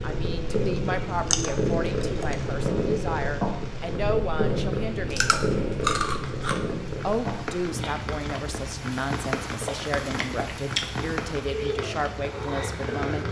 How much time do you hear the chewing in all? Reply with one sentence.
You can hear the chewing for 4 seconds altogether.